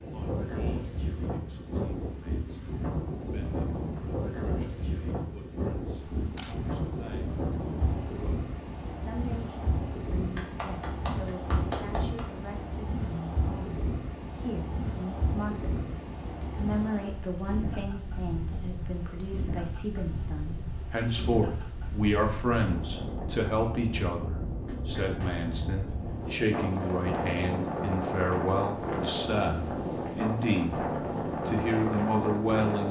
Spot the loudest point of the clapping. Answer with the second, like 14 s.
12 s.